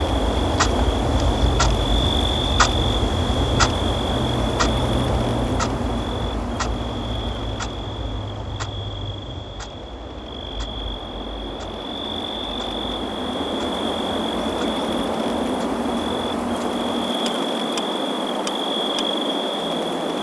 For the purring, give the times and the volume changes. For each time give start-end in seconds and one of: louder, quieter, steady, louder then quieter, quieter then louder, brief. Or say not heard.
not heard.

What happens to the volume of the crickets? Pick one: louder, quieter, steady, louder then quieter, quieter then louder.
quieter then louder.